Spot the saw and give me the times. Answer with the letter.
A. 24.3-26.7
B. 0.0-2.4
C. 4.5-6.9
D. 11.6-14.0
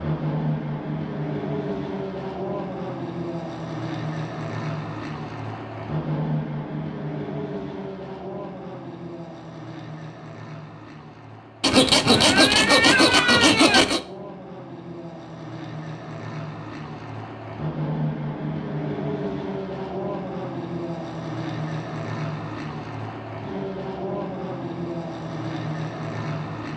D.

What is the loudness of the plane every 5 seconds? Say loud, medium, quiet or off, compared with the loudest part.
loud, loud, medium, loud, loud, loud.